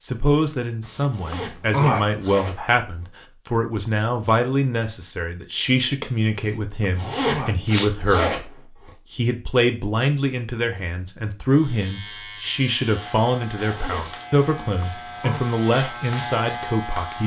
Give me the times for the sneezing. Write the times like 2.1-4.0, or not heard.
0.8-2.0, 7.2-7.9, 14.3-15.4.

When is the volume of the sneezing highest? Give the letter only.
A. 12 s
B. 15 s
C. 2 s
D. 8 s
C.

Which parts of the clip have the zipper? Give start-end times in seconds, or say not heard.
1.1-3.0, 7.0-8.9, 13.6-14.2.